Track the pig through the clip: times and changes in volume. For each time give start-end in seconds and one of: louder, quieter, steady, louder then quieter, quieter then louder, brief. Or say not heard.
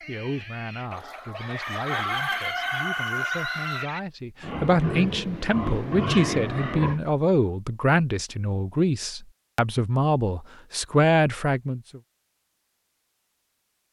0.0-7.0 louder.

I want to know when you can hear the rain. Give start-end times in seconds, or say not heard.
not heard.